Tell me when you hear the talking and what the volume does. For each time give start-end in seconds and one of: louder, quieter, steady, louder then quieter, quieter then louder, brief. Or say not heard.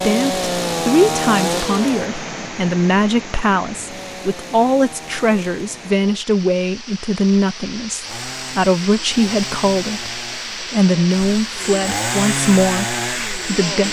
0.0-13.8 steady.